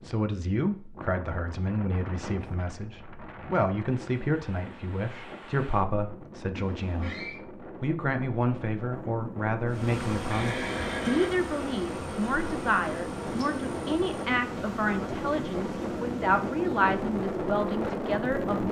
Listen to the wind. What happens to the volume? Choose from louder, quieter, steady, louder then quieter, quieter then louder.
louder.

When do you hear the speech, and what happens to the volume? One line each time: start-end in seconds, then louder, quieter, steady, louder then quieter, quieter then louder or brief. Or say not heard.
0.0-18.6 steady.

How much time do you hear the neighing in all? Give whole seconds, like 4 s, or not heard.
2 s.